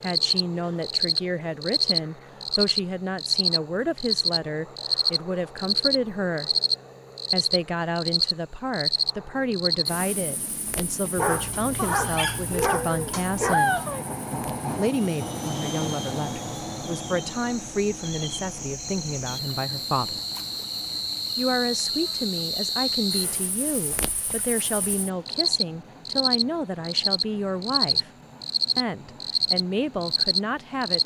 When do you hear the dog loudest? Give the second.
14 s.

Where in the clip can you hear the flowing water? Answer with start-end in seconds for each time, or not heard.
not heard.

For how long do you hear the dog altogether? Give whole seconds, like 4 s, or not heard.
3 s.